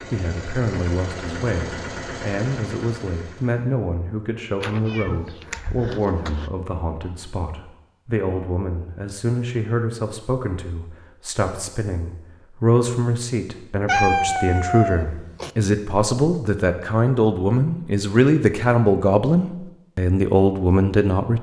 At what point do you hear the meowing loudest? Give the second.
14 s.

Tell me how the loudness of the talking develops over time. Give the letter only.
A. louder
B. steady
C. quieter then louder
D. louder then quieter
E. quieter
A.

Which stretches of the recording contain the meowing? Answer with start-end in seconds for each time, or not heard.
4.6-6.5, 13.8-15.5.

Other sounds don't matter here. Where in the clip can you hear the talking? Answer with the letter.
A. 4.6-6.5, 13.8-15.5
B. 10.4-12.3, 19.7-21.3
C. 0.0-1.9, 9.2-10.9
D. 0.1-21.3
D.